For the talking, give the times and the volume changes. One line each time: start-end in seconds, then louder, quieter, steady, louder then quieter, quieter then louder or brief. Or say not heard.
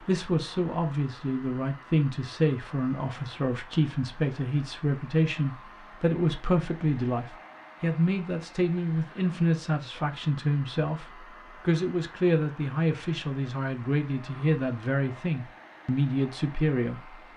0.1-17.1 steady.